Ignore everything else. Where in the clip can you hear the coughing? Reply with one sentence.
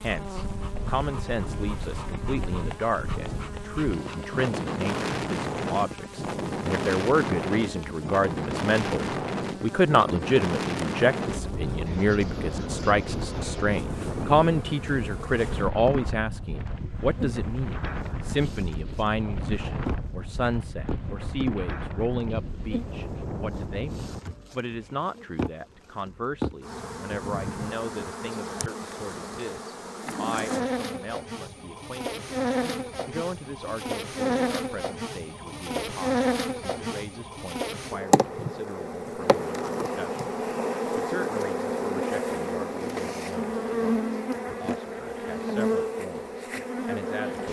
You can't hear the coughing here.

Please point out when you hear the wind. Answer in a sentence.
The wind can be heard from 0.0 to 24.2 s.